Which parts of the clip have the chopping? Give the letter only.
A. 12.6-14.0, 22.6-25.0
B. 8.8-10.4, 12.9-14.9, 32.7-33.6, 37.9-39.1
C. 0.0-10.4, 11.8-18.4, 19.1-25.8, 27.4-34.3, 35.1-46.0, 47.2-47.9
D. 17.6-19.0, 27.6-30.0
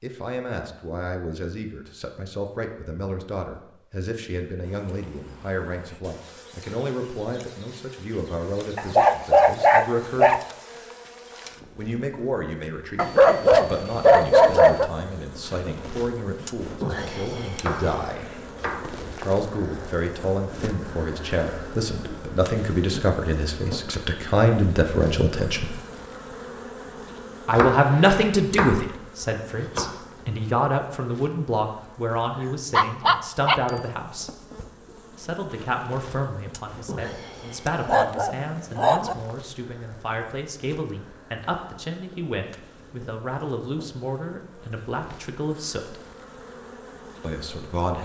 D.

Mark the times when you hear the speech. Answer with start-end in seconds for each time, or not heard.
0.0-10.4, 11.8-18.4, 19.1-25.8, 27.4-34.3, 35.1-46.0, 47.2-47.9.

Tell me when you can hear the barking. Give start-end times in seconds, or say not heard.
8.8-10.4, 12.9-14.9, 32.7-33.6, 37.9-39.1.